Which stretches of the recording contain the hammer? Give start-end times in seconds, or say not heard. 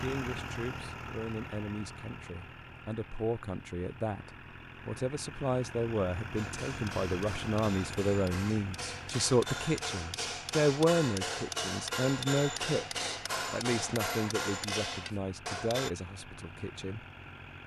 6.3-15.9.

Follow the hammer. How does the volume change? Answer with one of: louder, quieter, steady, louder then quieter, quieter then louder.
louder.